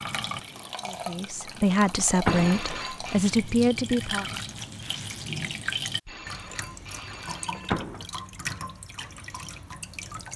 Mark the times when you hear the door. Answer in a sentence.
You can hear the door from 1.7 to 2.6 s and from 7.1 to 8.1 s.